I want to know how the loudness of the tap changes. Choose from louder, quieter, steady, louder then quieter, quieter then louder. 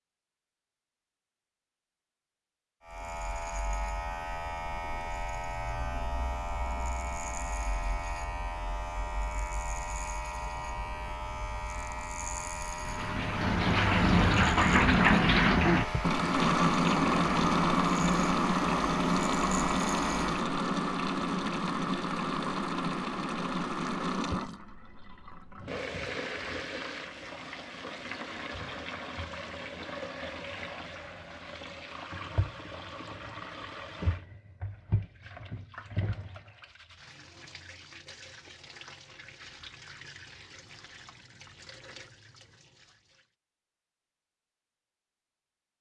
quieter.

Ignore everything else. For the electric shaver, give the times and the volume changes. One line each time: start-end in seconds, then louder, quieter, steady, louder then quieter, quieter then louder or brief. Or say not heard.
2.9-20.4 steady.